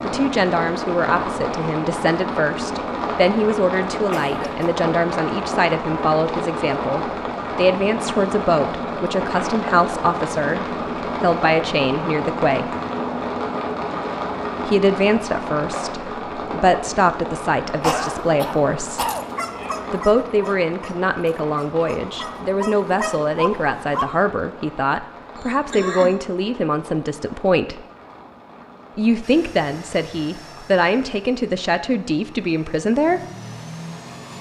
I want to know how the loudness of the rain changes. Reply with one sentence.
The loudness of the rain goes down.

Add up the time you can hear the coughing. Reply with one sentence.
You can hear the coughing for 3 seconds altogether.